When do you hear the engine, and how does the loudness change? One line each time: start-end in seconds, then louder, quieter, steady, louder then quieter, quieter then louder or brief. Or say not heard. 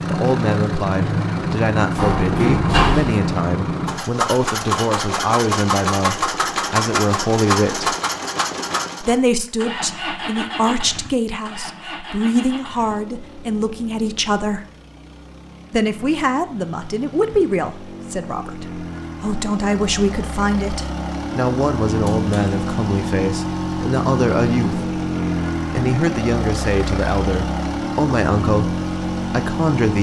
0.0-29.9 quieter then louder.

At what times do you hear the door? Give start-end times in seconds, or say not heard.
1.9-3.1, 21.9-22.6.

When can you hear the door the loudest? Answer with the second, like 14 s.
3 s.